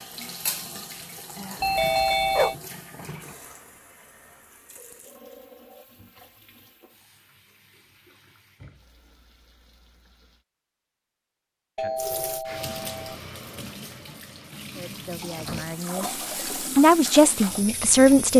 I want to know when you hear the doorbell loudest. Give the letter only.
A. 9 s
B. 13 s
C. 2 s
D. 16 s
C.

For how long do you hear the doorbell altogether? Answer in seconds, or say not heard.
2 s.